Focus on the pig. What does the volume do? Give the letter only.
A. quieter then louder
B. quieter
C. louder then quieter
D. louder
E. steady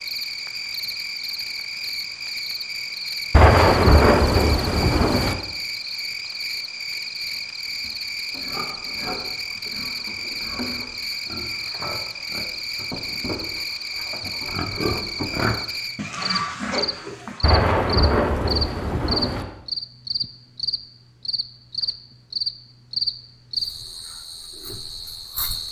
D.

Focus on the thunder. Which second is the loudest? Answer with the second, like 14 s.
4 s.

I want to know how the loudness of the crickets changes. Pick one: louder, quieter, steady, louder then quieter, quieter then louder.
steady.